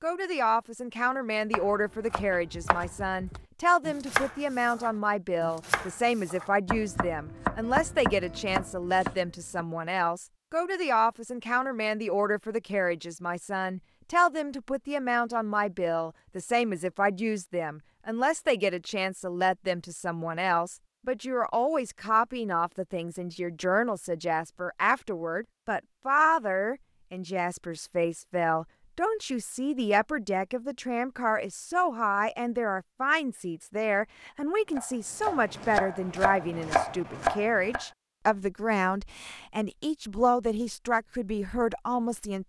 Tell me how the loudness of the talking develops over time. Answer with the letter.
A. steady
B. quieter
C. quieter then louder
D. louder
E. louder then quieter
A.